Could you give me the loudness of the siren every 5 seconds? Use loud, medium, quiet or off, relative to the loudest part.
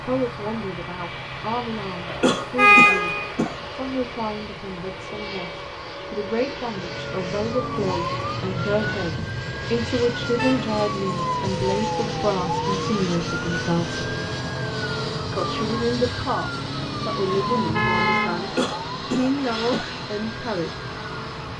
off, loud, loud, loud, medium.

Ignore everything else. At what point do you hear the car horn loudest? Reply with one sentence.
The loudest moment of the car horn is at 3 seconds.